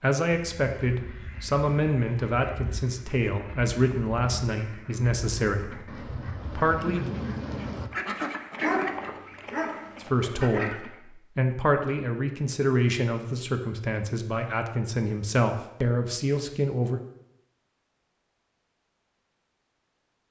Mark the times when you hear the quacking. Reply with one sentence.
The quacking can be heard from 0.3 to 10.9 s.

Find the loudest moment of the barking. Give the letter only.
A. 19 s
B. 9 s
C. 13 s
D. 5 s
B.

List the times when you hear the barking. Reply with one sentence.
The barking can be heard from 8.6 to 10.6 s.